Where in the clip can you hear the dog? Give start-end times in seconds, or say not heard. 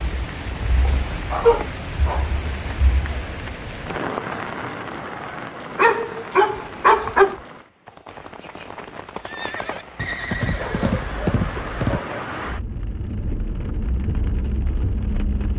0.8-2.4, 5.8-7.3, 10.6-12.2.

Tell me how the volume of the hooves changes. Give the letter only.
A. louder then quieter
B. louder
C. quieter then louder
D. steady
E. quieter
B.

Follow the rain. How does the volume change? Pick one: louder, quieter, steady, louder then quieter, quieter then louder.
quieter then louder.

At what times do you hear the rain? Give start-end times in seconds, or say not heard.
0.0-15.5.